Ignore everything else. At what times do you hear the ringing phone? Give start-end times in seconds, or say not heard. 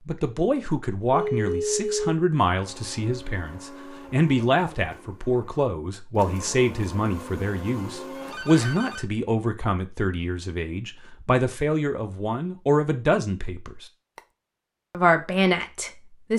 1.1-2.1, 8.2-9.1.